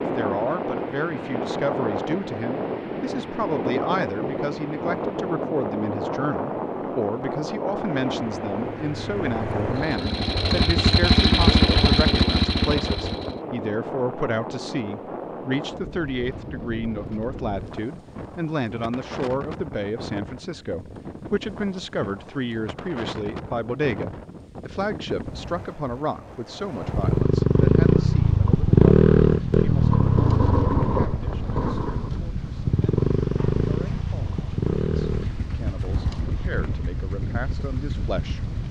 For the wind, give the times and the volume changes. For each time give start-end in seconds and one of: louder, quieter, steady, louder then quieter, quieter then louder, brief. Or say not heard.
0.0-38.6 quieter.